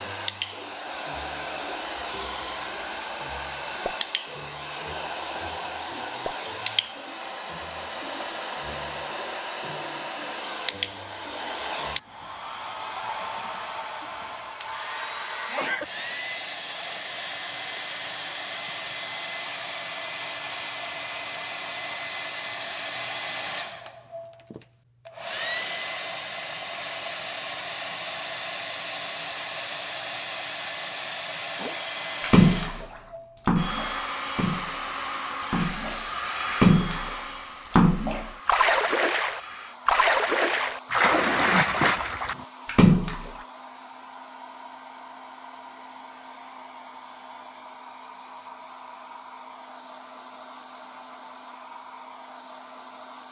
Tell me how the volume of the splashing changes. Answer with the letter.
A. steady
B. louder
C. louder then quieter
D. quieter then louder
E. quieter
D.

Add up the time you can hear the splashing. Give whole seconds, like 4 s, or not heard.
12 s.